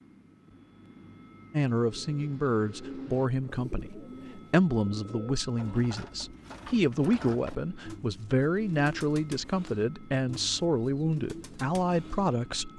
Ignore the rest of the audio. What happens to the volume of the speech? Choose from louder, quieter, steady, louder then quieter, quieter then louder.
steady.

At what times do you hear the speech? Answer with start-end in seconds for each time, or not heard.
1.5-12.7.